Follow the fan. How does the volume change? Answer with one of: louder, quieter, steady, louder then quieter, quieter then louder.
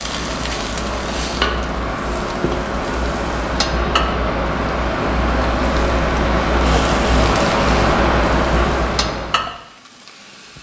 louder.